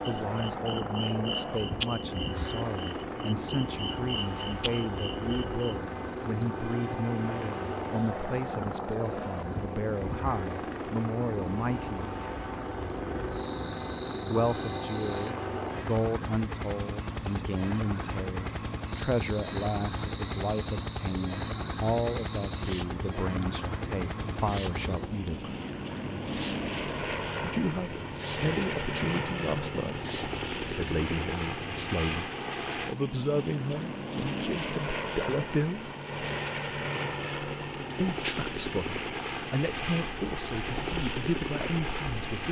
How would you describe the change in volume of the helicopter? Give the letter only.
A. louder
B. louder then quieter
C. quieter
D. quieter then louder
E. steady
E.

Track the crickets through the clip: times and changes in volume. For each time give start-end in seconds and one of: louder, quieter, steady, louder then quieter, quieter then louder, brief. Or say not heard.
0.0-42.4 steady.